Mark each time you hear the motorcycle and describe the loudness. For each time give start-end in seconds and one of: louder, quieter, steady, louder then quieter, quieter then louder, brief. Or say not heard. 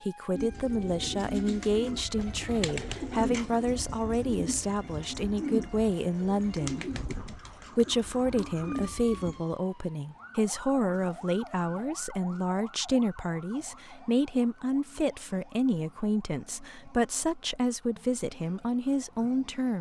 not heard.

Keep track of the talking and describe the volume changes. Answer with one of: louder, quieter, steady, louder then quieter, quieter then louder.
steady.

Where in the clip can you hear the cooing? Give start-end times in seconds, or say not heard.
0.3-9.4.